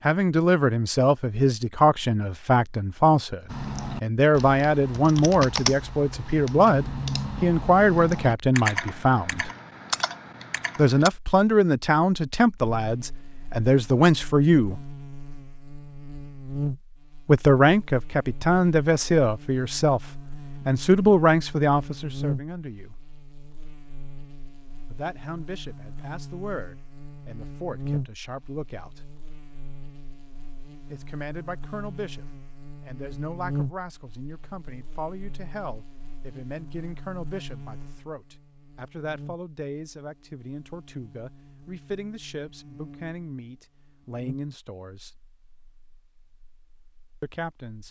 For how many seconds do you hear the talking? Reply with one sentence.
The talking can be heard for 38 seconds in total.